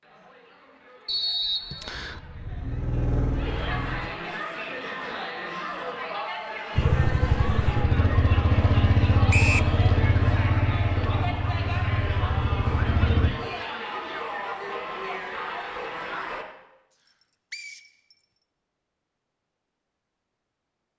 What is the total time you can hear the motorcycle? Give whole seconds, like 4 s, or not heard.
9 s.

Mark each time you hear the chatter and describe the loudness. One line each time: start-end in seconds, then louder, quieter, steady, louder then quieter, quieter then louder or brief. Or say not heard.
0.0-16.4 louder.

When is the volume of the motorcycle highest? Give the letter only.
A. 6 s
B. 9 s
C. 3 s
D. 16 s
B.